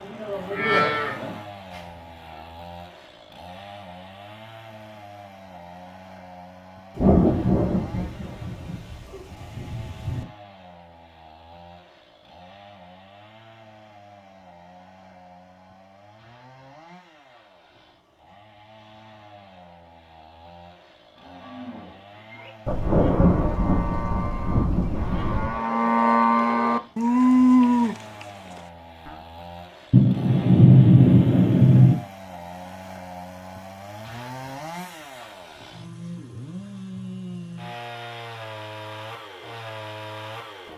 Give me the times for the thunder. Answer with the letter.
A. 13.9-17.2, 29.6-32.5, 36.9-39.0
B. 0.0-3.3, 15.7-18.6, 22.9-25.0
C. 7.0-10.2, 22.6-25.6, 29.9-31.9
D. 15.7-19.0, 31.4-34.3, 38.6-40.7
C.